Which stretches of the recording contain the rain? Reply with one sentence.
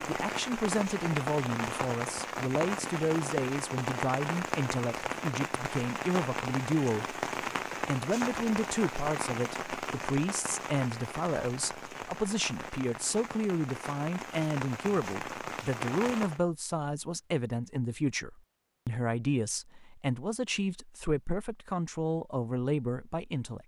You can hear the rain from 0.0 to 16.4 s.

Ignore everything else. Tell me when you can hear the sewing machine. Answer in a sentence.
You can't hear the sewing machine here.